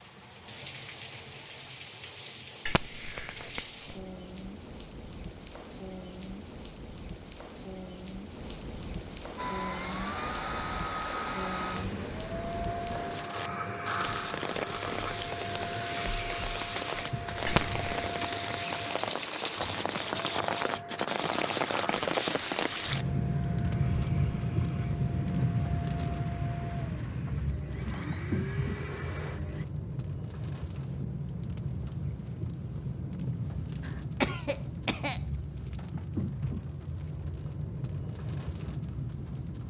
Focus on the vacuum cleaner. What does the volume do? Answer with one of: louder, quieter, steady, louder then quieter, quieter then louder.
quieter.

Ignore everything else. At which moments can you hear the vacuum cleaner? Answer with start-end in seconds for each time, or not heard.
9.3-29.6.